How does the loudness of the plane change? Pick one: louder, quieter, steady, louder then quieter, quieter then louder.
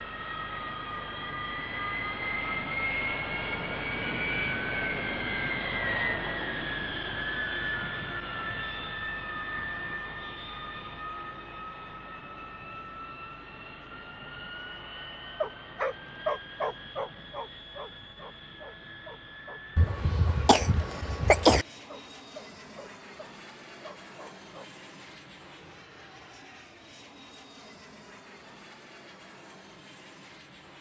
quieter.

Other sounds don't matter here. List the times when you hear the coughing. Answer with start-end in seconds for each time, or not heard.
19.8-21.6.